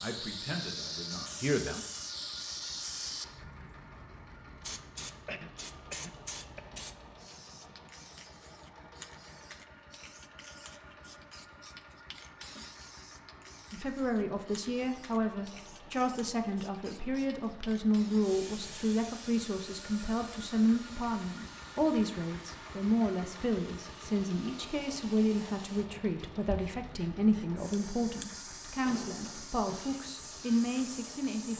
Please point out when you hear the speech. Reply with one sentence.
You can hear the speech from 0.0 to 1.8 s and from 13.7 to 31.5 s.